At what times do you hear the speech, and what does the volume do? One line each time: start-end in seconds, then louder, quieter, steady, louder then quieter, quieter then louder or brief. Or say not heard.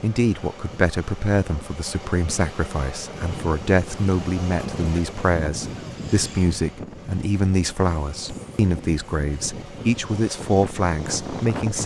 0.0-11.8 steady.